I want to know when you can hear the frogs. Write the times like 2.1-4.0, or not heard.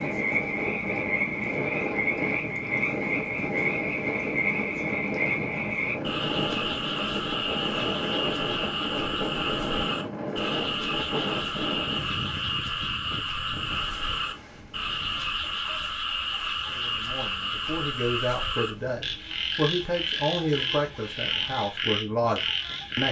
0.0-23.0.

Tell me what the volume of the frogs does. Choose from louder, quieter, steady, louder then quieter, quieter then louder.
steady.